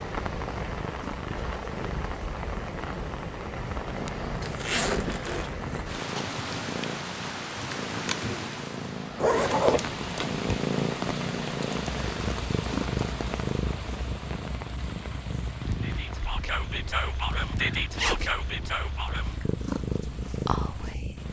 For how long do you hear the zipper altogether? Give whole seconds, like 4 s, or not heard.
3 s.